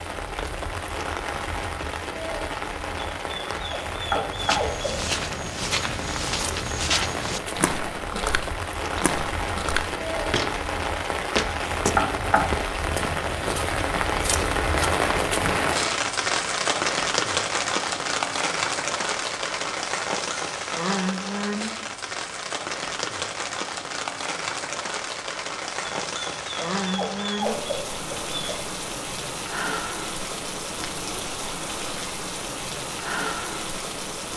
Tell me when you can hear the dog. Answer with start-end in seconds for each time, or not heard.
3.0-5.1, 25.9-28.6.